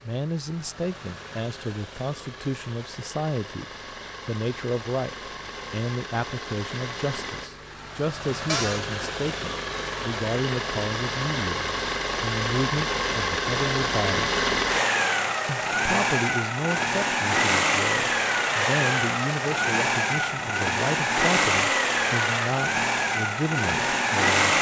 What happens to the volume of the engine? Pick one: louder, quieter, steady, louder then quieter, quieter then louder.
louder.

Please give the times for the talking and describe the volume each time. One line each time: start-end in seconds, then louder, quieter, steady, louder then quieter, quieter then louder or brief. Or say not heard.
0.0-14.4 steady
15.4-24.4 steady.